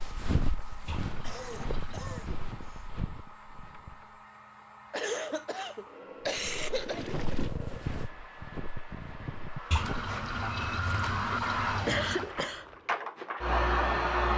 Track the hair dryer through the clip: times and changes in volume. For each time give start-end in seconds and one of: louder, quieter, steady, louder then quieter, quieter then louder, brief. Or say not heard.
0.0-14.3 louder.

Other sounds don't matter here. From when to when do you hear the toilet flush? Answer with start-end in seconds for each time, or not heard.
0.8-2.2, 6.7-7.5, 9.7-12.3.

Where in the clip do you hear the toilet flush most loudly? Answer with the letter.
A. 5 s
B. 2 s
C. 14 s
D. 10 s
D.